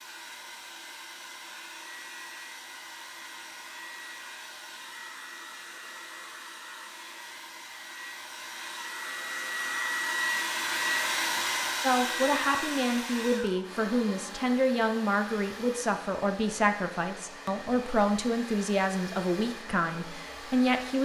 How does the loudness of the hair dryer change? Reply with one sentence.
The loudness of the hair dryer goes up, then down.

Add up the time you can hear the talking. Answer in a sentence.
The talking can be heard for 9 seconds in total.